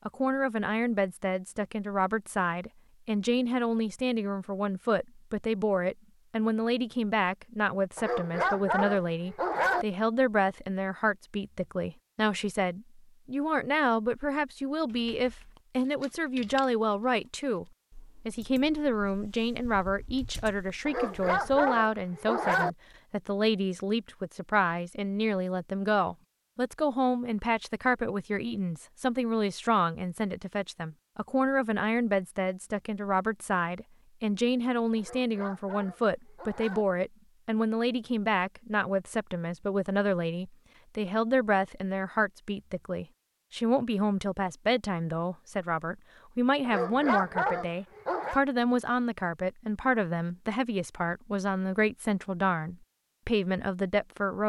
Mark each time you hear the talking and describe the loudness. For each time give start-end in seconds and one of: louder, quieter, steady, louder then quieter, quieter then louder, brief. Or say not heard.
0.1-17.6 steady
18.2-54.4 steady.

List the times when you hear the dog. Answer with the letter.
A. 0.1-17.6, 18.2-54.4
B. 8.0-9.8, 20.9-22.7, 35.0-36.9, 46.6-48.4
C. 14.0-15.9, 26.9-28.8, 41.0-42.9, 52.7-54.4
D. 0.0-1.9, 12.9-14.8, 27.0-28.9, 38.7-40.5
B.